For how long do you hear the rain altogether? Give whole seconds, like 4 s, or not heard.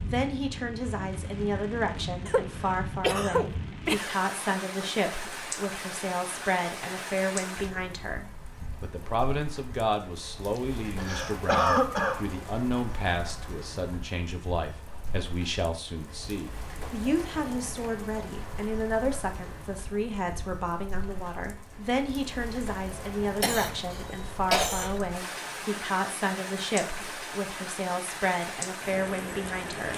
30 s.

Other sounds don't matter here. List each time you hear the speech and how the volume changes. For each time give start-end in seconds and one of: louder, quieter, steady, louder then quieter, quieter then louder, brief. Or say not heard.
0.0-29.9 steady.